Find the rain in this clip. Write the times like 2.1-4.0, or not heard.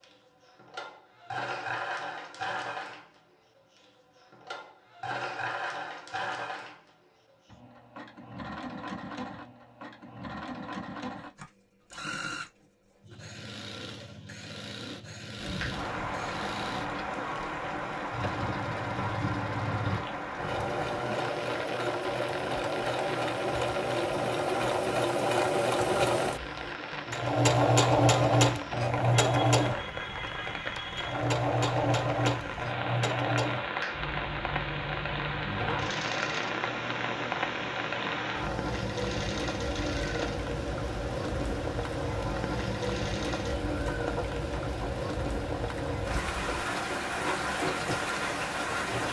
15.3-49.0.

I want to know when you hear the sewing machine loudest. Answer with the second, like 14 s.
28 s.